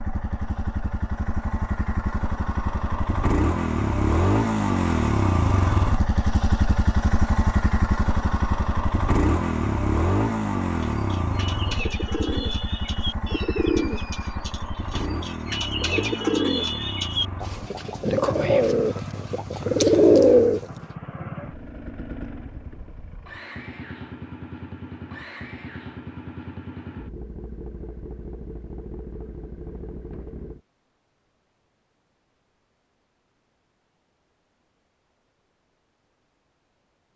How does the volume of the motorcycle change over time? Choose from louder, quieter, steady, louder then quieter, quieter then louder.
quieter.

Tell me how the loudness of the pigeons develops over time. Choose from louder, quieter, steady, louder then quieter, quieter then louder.
louder.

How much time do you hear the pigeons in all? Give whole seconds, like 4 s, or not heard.
10 s.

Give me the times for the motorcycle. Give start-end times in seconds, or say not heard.
0.0-30.6.